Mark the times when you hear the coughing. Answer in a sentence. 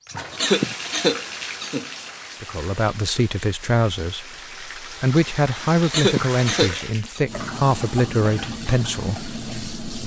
You can hear the coughing from 0.3 to 1.9 s and from 5.8 to 7.2 s.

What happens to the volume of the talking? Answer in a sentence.
The volume of the talking stays about the same.